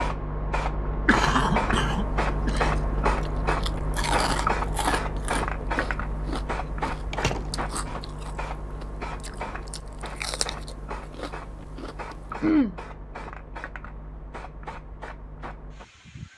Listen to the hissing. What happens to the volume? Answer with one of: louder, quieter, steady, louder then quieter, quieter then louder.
quieter.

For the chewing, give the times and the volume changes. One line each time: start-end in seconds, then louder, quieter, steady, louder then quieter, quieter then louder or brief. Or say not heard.
1.9-12.3 quieter then louder.